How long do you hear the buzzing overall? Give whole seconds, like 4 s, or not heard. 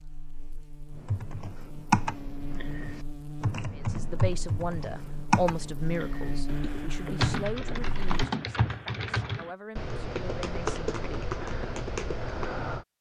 8 s.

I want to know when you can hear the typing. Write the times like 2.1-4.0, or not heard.
1.0-12.8.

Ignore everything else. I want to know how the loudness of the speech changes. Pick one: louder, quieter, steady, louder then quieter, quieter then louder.
quieter.